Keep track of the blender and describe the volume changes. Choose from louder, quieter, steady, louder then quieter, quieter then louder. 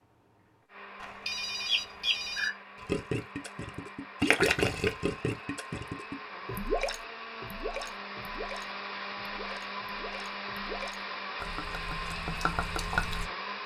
louder.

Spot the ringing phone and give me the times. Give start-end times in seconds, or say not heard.
1.0-2.5.